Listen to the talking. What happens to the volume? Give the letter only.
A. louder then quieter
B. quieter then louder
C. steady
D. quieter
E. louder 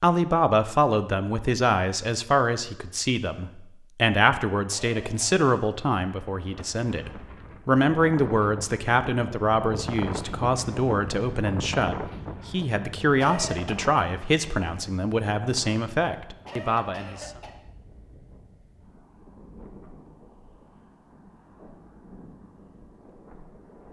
C.